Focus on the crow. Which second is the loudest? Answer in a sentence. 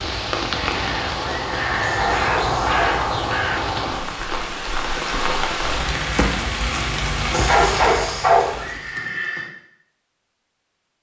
The volume of the crow peaks at 3 seconds.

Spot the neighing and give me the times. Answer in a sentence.
You can hear the neighing from 1.2 to 2.1 s and from 8.6 to 9.5 s.